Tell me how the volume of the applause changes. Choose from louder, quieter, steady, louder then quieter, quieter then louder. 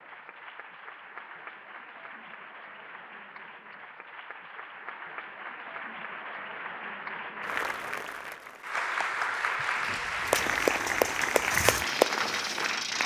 louder.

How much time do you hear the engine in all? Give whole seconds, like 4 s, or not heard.
3 s.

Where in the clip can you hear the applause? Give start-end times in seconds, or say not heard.
0.0-13.0.